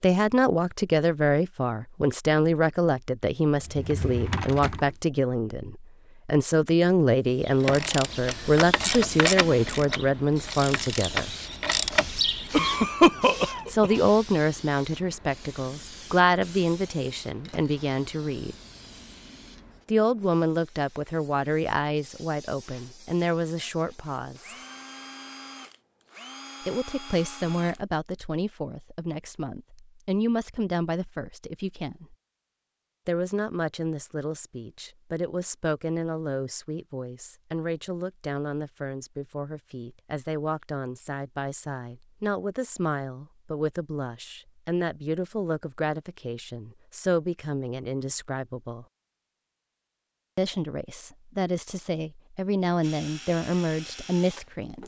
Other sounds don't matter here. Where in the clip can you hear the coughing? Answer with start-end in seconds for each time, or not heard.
12.5-13.9.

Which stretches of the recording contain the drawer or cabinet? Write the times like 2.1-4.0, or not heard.
3.5-5.0.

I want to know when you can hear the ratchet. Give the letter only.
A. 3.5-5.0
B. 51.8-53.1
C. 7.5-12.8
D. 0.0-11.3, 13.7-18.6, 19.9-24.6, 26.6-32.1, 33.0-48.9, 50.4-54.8
C.